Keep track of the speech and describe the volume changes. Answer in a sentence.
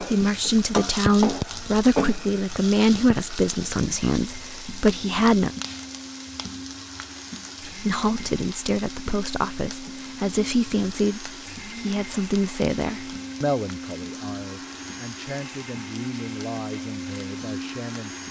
The volume of the speech goes down.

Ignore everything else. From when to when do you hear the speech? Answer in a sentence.
You can hear the speech from 0.0 to 5.5 s and from 7.6 to 18.2 s.